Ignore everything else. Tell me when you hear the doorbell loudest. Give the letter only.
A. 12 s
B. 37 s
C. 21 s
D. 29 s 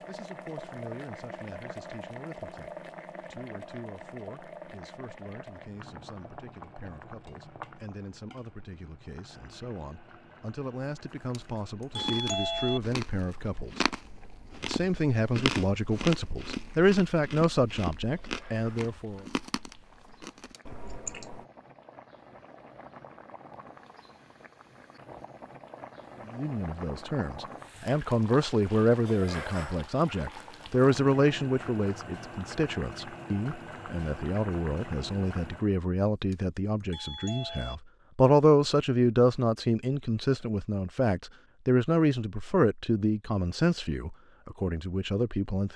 A.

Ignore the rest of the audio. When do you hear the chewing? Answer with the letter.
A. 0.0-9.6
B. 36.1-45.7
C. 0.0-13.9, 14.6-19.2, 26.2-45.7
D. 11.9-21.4
D.